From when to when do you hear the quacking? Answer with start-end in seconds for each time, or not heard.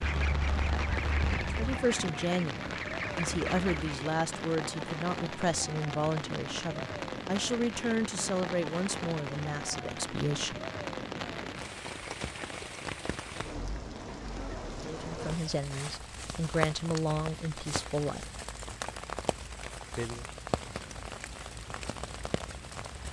0.0-4.0.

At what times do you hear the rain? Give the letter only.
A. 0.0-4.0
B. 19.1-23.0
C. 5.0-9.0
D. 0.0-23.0
D.